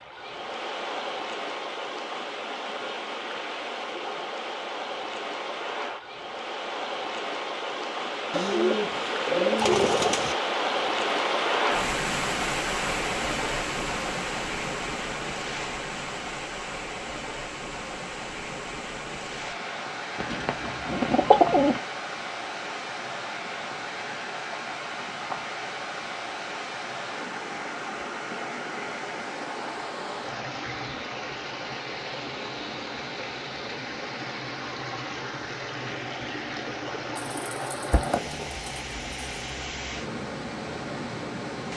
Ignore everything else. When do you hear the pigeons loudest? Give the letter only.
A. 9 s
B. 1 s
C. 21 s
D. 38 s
C.